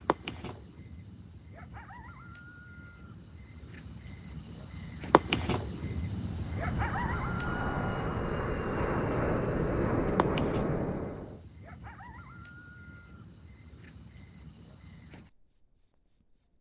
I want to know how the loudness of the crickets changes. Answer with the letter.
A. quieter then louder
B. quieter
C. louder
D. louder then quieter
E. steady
D.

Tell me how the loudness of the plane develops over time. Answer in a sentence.
The loudness of the plane goes up.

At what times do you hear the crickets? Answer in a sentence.
You can hear the crickets from 0.0 to 16.5 s.